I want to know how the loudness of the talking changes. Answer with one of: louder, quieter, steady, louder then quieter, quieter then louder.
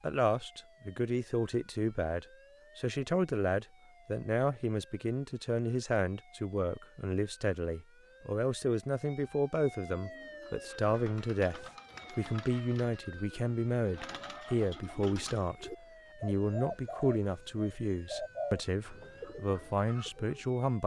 steady.